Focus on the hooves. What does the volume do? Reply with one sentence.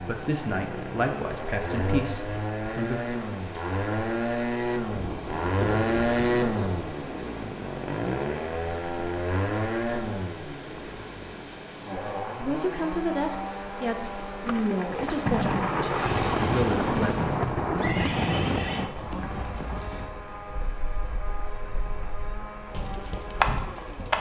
The volume of the hooves goes down, then up.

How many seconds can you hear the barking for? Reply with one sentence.
You can't hear the barking here.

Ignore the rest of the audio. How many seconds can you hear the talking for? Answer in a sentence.
You can hear the talking for 8 seconds altogether.